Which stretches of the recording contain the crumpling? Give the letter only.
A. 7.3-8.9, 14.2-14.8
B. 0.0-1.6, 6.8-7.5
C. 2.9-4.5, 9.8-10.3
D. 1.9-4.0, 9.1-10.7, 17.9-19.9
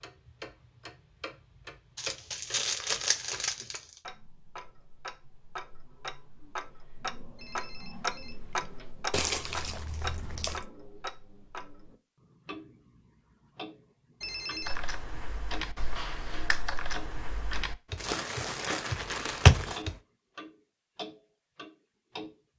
D.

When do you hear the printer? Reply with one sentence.
The printer can't be heard in this clip.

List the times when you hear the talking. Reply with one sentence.
The talking can't be heard in this clip.